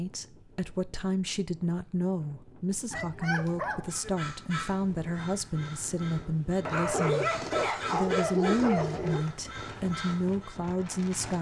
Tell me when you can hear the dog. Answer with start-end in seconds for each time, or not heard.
2.9-4.1, 6.7-9.2.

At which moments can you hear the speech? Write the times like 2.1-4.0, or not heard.
0.0-7.3, 7.9-11.3.